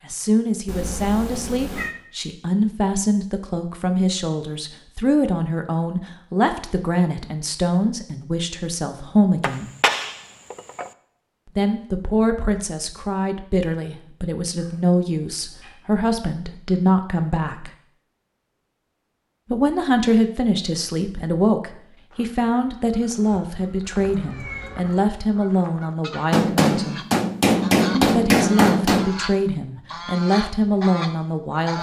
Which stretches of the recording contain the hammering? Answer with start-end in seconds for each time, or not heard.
9.4-10.9, 26.3-29.1.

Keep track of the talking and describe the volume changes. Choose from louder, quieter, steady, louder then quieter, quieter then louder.
steady.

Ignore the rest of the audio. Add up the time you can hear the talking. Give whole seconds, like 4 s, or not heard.
27 s.